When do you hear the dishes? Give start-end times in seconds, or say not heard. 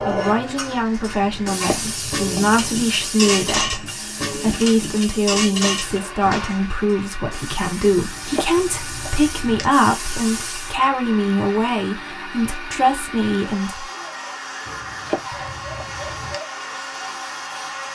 1.6-6.8.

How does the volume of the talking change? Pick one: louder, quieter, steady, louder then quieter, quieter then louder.
steady.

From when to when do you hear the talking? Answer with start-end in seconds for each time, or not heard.
0.0-13.8.